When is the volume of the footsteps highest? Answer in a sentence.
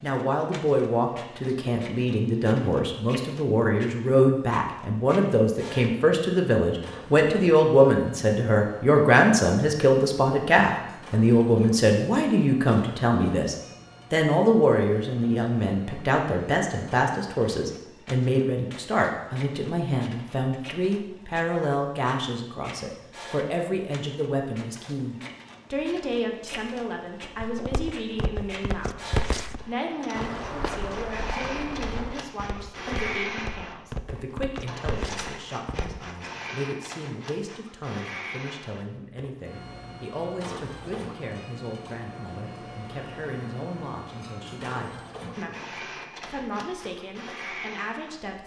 The volume of the footsteps peaks at 29 seconds.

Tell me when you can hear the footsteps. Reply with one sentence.
The footsteps can be heard from 27.4 to 36.0 s.